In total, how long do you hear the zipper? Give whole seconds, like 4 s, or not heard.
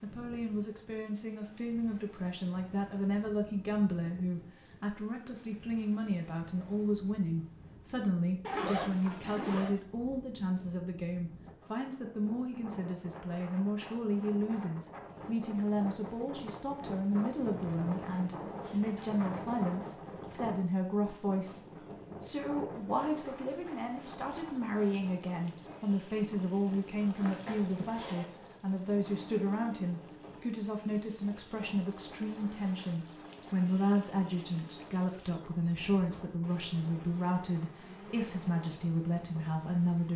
4 s.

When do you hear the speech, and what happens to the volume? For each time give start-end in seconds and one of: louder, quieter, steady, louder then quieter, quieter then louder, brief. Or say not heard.
0.0-40.1 steady.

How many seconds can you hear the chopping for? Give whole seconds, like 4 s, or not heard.
not heard.